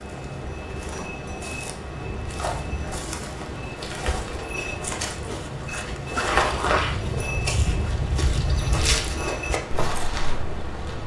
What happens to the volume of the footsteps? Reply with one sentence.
The loudness of the footsteps goes up.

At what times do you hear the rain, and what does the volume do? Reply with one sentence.
The rain can be heard from 0.0 to 11.0 s, at a steady volume.